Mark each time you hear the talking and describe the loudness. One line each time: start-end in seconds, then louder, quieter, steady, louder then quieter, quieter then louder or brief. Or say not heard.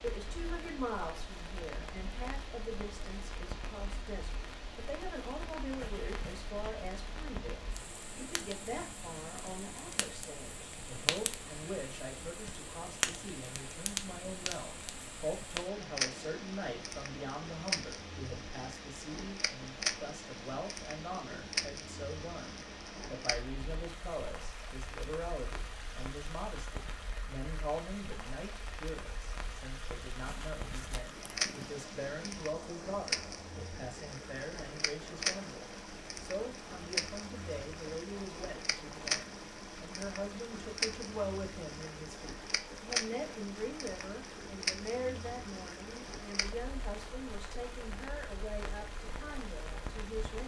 0.0-50.4 steady.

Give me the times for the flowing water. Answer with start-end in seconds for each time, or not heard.
0.0-50.4.